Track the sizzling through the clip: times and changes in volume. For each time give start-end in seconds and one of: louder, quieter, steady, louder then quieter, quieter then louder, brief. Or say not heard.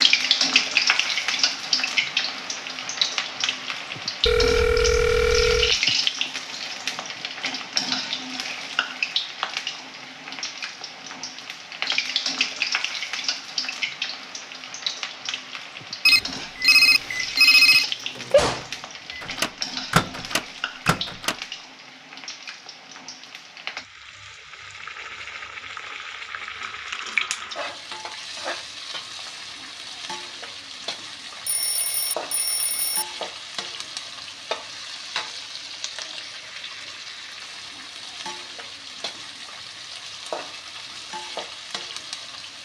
0.0-42.6 quieter.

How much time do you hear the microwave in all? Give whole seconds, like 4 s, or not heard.
5 s.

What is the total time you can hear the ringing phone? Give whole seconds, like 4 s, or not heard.
5 s.